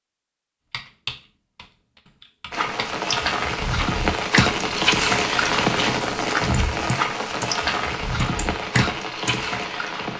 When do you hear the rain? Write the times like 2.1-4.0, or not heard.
2.5-10.1.